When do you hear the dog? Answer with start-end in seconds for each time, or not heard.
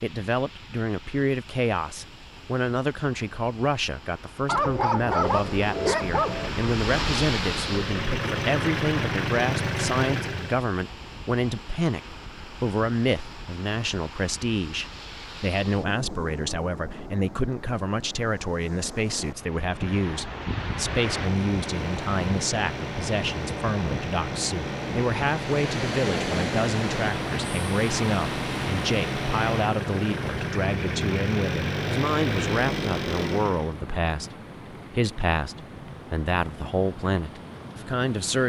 4.5-6.5.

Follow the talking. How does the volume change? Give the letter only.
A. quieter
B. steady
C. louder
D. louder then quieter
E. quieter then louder
B.